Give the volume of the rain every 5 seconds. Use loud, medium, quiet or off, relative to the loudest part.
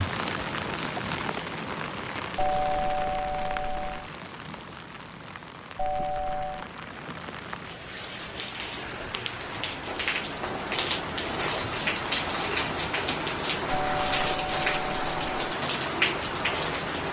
medium, medium, loud, loud.